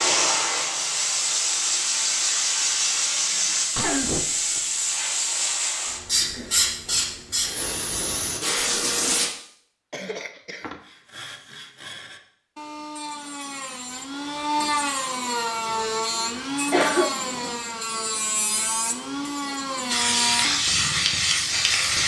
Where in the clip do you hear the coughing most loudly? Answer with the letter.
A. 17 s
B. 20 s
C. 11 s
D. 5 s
A.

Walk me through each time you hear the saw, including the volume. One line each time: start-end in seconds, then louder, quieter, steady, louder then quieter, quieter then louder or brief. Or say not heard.
10.8-20.8 louder.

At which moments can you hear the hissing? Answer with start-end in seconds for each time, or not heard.
0.0-9.3, 19.9-22.0.